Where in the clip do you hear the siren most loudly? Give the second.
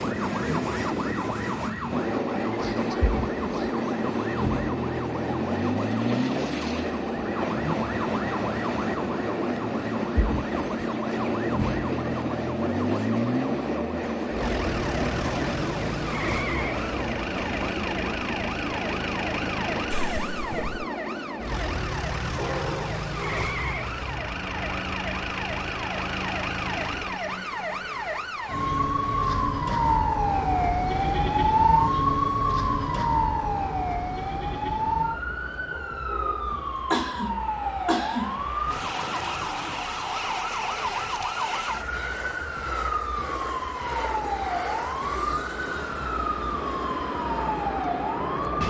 32 s.